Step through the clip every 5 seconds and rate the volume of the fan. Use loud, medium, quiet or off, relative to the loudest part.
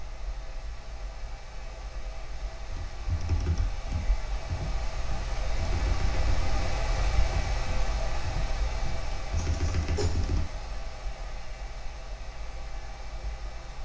medium, loud, medium.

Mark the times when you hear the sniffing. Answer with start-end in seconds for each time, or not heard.
9.3-10.3.